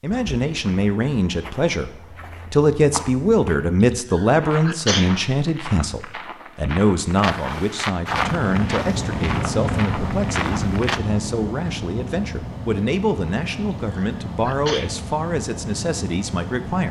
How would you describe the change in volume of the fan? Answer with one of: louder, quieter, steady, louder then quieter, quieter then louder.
quieter.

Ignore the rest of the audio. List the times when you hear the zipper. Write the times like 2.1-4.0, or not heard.
not heard.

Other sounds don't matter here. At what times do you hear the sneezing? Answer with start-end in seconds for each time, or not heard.
3.9-5.2, 13.7-14.9.